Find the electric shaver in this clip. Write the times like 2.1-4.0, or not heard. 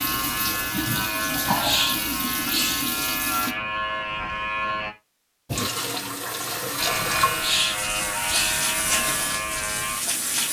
0.0-5.0, 6.8-10.2.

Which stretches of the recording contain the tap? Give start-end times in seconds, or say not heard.
0.0-3.5, 5.5-10.4.